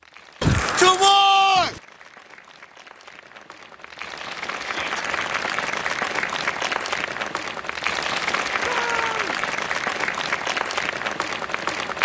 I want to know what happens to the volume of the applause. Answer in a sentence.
The loudness of the applause goes up.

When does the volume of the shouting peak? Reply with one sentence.
The volume of the shouting peaks at 1 second.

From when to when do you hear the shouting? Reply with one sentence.
You can hear the shouting from 0.4 to 1.8 s, from 4.6 to 5.0 s and from 8.6 to 9.3 s.